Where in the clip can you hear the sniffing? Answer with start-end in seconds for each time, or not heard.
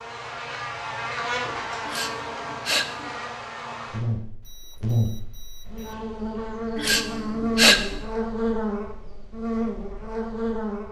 1.9-3.1, 6.8-8.0.